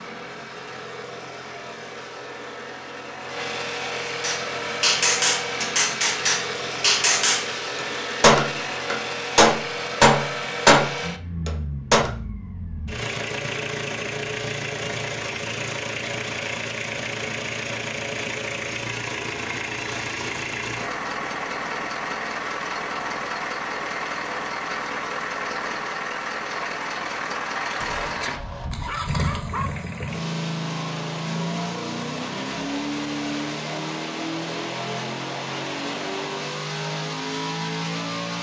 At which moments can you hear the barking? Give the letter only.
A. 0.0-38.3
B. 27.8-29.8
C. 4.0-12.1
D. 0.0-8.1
B.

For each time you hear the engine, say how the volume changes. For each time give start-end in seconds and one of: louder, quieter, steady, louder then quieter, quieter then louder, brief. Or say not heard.
0.0-38.3 steady.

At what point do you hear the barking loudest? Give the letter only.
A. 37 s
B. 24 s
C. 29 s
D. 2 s
C.